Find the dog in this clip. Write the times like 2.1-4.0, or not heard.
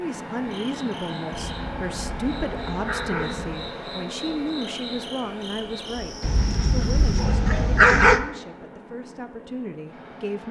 1.6-3.6, 6.2-8.2.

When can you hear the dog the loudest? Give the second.
8 s.